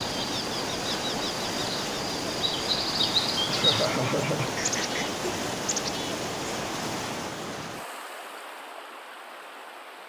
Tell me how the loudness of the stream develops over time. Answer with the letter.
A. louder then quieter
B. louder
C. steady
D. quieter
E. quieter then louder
D.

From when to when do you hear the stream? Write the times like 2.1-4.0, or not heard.
0.0-10.0.